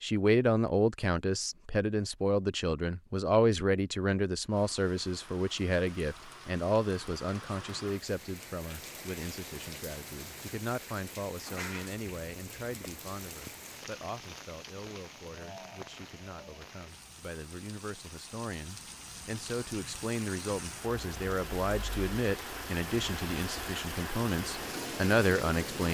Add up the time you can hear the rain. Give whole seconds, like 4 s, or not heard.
21 s.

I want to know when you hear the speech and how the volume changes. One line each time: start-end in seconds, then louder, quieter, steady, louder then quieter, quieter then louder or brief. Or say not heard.
0.0-25.8 quieter then louder.